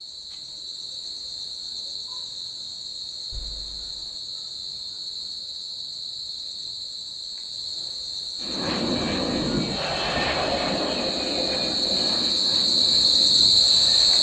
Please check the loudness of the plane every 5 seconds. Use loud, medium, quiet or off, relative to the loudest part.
off, loud, loud.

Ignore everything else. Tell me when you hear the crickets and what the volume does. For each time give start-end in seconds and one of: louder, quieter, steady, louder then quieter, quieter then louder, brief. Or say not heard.
0.0-14.1 louder.